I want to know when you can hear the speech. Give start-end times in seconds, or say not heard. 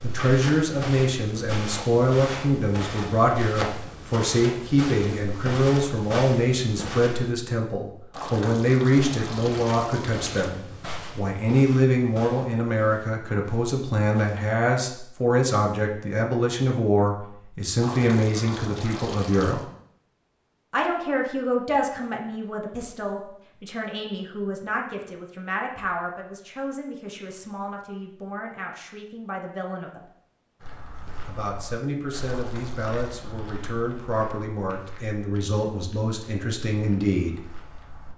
0.0-19.6, 20.7-30.1, 31.2-37.4.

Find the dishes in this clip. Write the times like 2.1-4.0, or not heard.
not heard.